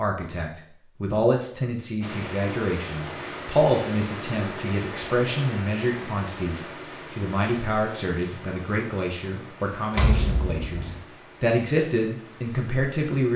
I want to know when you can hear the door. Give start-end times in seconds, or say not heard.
9.9-11.0.